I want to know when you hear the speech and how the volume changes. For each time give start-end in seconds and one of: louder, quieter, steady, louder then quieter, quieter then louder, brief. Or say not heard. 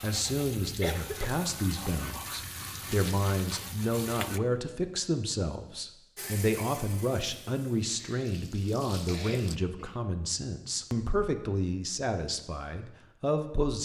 0.0-13.8 steady.